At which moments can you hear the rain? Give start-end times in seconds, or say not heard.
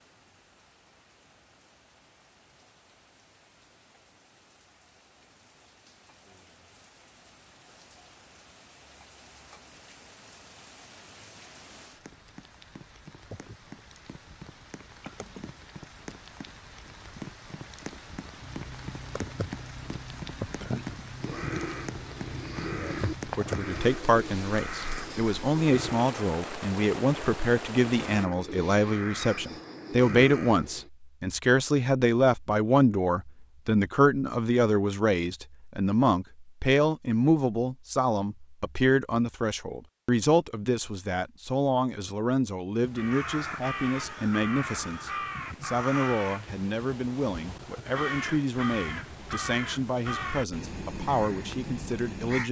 0.0-28.2.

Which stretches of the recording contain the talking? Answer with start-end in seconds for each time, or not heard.
22.8-52.4.